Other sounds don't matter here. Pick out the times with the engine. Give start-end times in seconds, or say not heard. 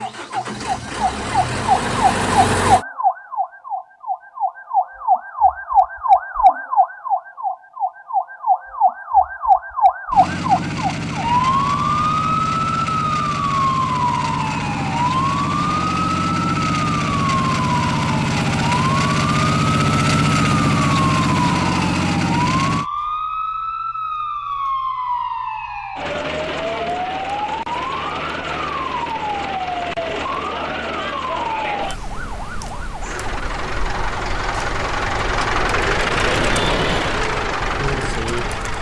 0.0-2.9, 10.1-22.9, 33.0-38.7.